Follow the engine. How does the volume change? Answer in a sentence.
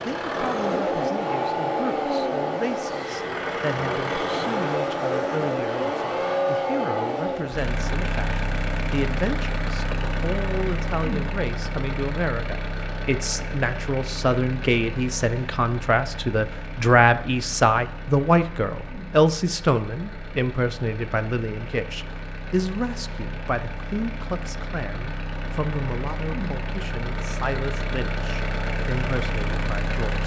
The volume of the engine goes down, then up.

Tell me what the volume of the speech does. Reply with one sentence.
The volume of the speech goes up, then down.